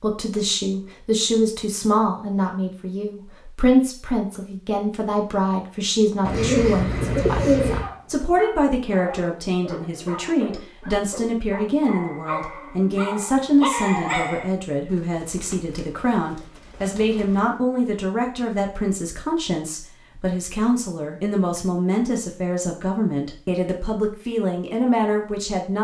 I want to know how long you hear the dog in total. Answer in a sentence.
The dog can be heard for 7 seconds in total.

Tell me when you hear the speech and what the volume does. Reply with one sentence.
The speech can be heard from 0.0 to 25.7 s, at a steady volume.